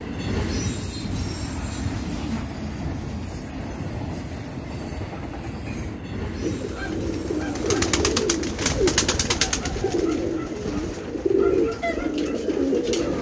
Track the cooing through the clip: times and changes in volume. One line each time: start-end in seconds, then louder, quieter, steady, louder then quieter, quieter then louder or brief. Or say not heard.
6.4-13.1 steady.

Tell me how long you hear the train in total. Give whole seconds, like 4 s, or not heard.
13 s.